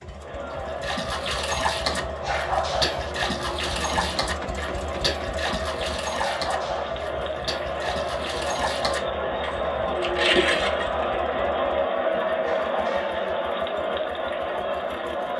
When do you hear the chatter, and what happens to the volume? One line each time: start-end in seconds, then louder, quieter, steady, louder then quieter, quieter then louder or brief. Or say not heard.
0.0-15.3 louder.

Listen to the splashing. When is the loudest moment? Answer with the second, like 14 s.
10 s.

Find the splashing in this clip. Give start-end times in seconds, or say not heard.
0.8-11.1.